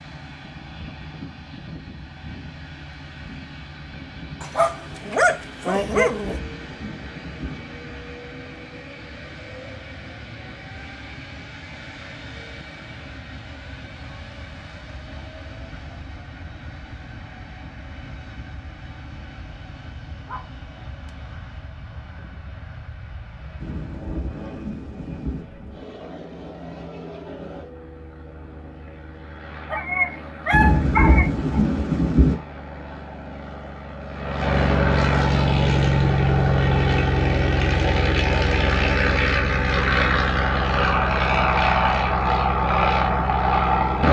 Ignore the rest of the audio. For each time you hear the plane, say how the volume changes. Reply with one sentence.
You can hear the plane from 0.0 to 44.0 s, getting louder.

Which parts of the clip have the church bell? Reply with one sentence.
The church bell can't be heard in this clip.